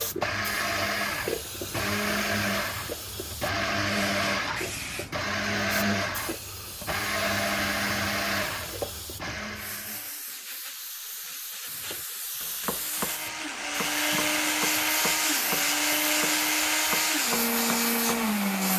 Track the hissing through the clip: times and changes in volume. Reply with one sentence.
You can hear the hissing from 0.0 to 18.7 s, getting louder.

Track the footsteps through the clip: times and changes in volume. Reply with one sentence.
You can't hear the footsteps here.